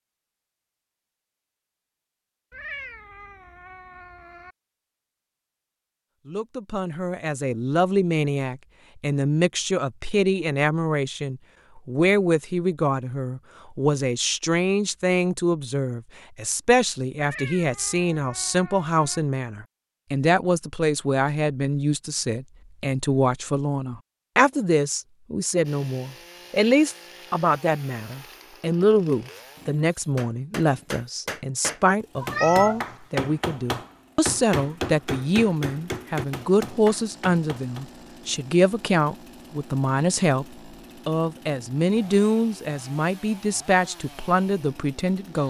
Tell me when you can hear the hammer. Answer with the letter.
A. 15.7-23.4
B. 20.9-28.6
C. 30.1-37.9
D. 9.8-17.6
C.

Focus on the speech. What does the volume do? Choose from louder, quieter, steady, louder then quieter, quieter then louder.
steady.